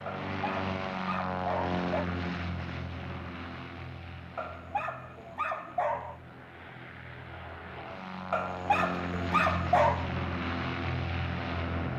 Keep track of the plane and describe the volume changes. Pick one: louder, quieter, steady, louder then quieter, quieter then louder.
quieter then louder.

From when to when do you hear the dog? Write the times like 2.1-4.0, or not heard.
0.1-2.0, 4.3-6.2, 8.3-10.1.